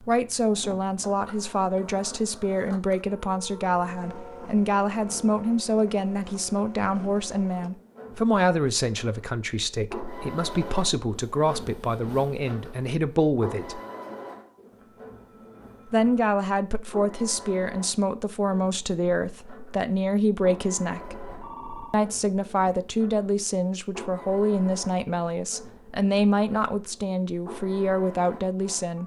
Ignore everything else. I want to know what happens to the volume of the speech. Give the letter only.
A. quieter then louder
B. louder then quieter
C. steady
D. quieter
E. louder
C.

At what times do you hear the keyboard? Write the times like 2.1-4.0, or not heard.
not heard.